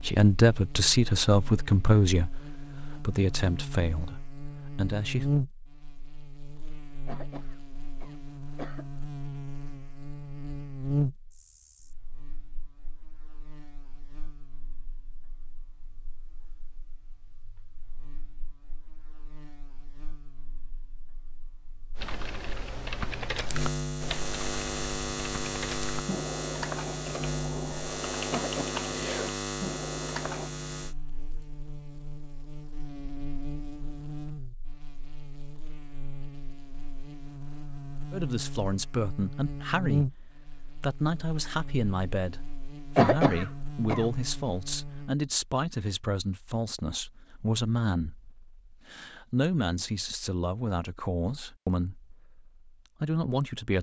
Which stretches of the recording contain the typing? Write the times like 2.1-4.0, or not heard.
21.9-30.5.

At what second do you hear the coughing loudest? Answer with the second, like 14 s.
43 s.